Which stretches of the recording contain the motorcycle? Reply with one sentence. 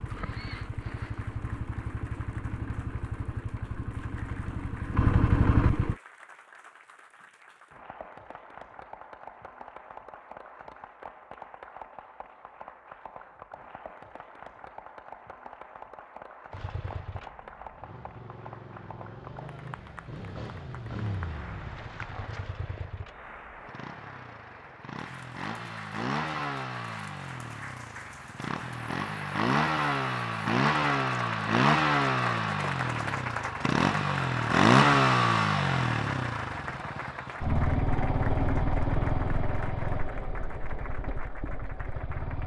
You can hear the motorcycle from 0.0 to 6.0 s and from 16.5 to 42.4 s.